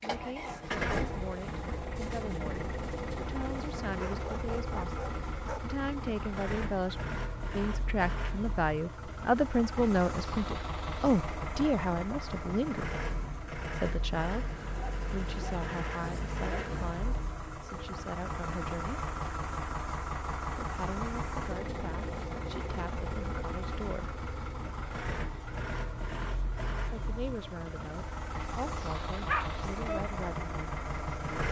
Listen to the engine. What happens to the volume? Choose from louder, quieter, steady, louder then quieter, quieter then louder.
steady.